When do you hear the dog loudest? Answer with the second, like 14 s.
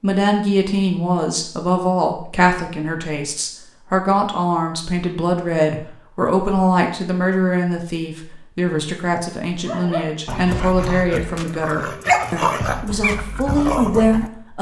12 s.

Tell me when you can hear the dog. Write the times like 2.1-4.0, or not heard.
9.7-14.3.